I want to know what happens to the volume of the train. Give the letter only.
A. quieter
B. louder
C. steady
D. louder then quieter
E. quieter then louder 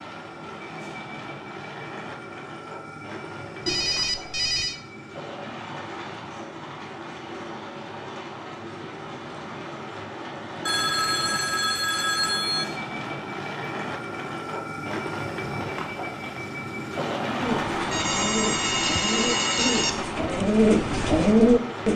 B.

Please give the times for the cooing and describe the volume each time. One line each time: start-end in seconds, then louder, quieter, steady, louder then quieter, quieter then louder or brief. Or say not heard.
17.4-21.9 louder.